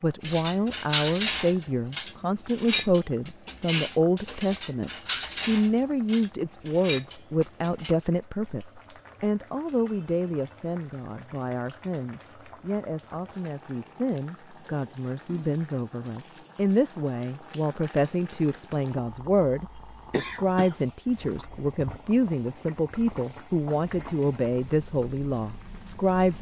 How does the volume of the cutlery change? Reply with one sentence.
The loudness of the cutlery goes down.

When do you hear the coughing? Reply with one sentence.
You can hear the coughing from 20.1 to 20.8 s.